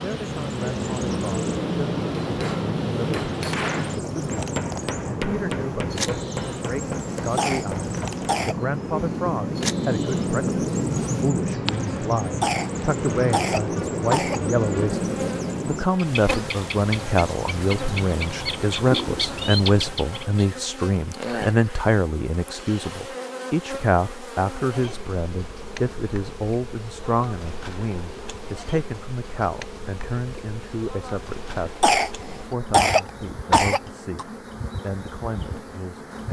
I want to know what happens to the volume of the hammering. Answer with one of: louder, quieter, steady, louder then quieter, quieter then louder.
steady.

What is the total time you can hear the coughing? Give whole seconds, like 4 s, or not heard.
6 s.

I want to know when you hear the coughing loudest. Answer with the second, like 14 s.
33 s.